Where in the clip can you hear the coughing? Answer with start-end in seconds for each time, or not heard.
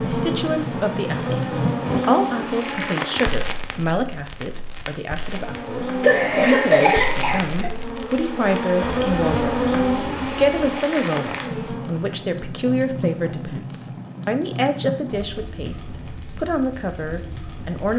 6.0-7.7.